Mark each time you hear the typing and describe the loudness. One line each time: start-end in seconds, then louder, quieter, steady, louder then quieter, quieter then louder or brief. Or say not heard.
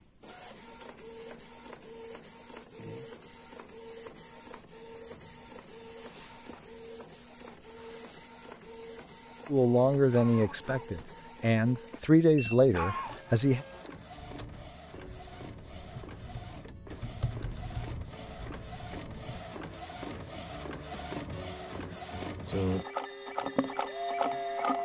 14.3-19.4 louder then quieter.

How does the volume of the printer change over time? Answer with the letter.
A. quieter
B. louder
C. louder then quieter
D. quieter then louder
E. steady
B.